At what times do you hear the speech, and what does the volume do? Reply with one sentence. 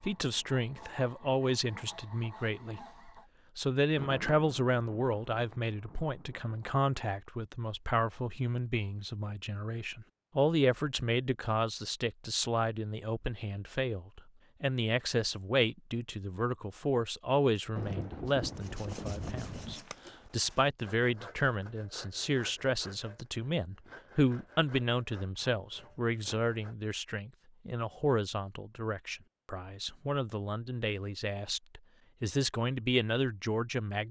You can hear the speech from 0.0 to 34.0 s, at a steady volume.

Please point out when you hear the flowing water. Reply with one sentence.
The flowing water can't be heard in this clip.